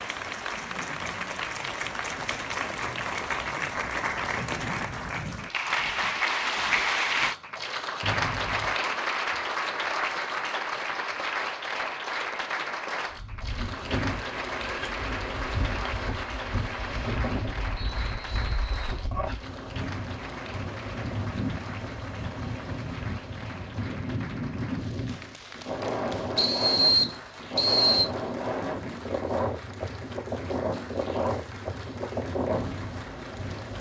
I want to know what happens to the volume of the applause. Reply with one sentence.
The volume of the applause goes down.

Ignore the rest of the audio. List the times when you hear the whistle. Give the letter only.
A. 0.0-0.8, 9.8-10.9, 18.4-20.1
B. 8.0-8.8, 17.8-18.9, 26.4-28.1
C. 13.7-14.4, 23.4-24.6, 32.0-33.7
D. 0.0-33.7
B.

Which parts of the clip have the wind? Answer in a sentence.
The wind can be heard from 13.1 to 33.7 s.